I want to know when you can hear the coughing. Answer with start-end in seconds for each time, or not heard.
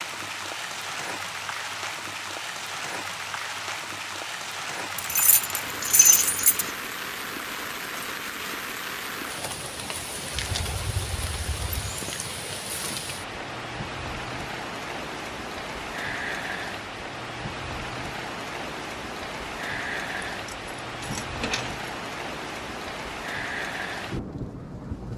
not heard.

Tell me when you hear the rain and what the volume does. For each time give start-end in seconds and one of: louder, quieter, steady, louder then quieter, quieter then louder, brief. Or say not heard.
0.0-25.1 steady.